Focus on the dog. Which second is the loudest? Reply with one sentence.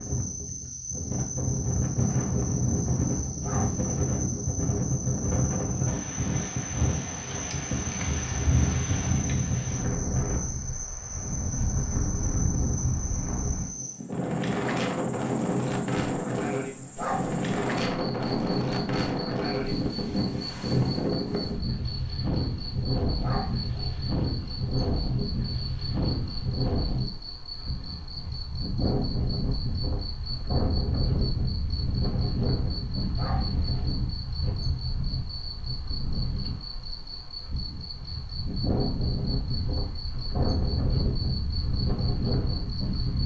The volume of the dog peaks at 17 seconds.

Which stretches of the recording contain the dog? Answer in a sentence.
You can hear the dog from 3.4 to 4.0 s, from 16.9 to 17.4 s, from 23.2 to 23.9 s and from 33.1 to 33.9 s.